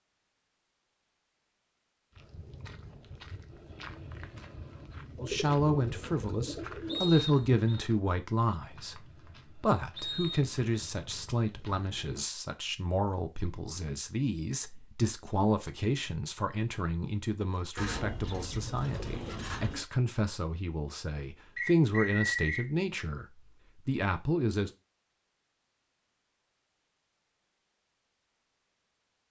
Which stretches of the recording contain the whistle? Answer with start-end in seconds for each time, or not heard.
6.8-7.8, 9.9-10.9, 21.6-22.6.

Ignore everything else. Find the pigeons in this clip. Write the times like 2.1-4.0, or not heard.
5.2-7.2, 17.8-19.9.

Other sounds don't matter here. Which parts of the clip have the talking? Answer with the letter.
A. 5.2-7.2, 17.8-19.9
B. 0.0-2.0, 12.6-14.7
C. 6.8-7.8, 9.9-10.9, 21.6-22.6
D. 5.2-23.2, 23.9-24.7
D.